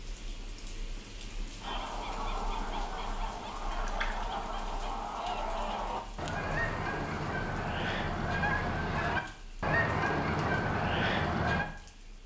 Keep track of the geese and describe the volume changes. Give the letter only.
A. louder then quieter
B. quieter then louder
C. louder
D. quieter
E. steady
C.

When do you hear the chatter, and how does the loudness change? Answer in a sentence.
You can't hear the chatter here.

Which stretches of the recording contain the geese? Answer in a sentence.
The geese can be heard from 1.6 to 11.7 s.